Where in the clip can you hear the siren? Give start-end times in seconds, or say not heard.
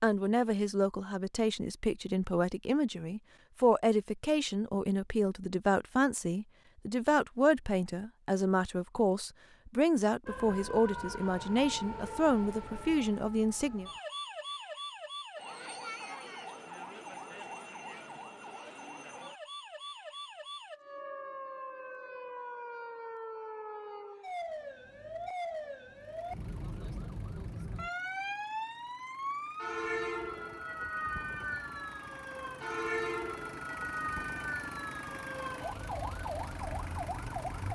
10.2-37.7.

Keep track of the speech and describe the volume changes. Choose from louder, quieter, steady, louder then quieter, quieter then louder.
steady.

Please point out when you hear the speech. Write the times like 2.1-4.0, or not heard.
0.0-13.9.